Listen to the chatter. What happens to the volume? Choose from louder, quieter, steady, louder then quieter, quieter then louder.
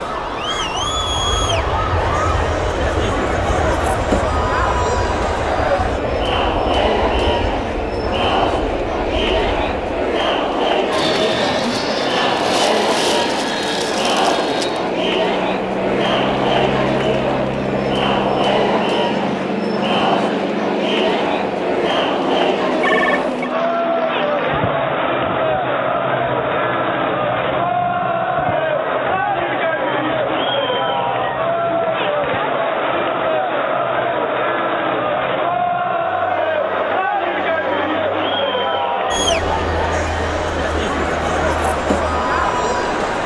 steady.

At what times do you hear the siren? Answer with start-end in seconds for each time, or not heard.
0.0-2.5.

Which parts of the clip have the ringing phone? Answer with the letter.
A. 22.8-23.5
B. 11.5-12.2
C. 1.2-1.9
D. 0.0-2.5
A.